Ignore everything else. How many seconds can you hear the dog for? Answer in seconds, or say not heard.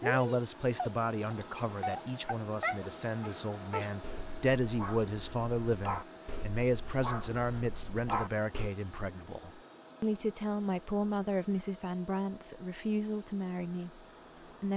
9 s.